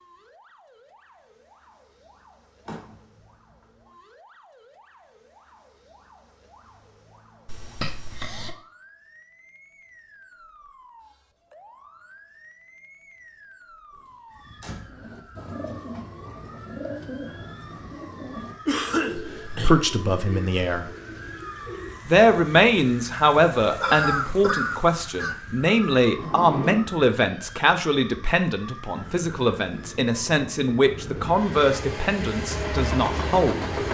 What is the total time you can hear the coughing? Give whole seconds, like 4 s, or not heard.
4 s.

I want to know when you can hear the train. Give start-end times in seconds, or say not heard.
28.9-33.8.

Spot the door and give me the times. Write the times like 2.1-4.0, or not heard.
2.6-3.8, 14.0-15.1, 26.1-26.9.